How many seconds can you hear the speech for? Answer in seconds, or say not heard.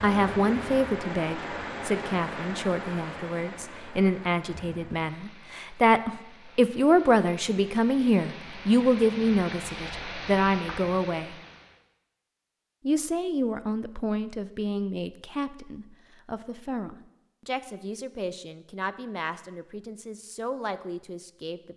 20 s.